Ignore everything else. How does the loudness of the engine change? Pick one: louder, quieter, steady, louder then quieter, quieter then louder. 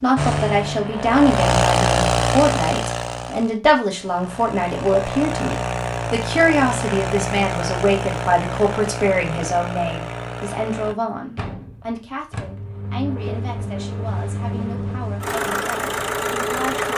quieter then louder.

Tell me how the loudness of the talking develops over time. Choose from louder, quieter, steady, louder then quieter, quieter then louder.
quieter.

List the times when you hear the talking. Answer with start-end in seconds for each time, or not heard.
0.0-16.9.